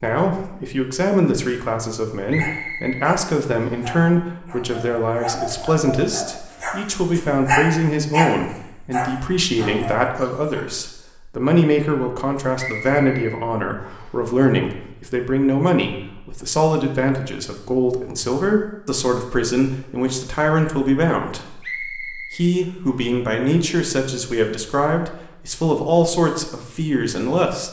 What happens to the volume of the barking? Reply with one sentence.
The volume of the barking goes up, then down.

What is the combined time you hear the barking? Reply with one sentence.
The barking can be heard for 8 seconds in total.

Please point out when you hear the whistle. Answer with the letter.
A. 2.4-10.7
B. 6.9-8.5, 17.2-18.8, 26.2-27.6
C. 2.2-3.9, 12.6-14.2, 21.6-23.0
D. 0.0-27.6
C.